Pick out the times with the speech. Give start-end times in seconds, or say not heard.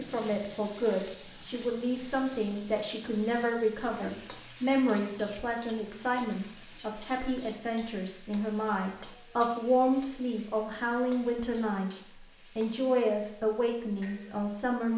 0.0-14.9.